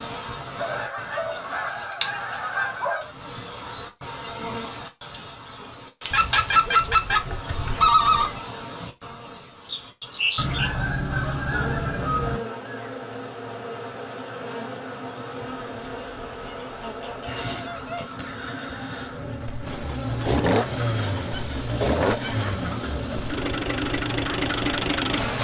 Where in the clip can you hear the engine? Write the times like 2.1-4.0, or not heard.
19.6-25.3.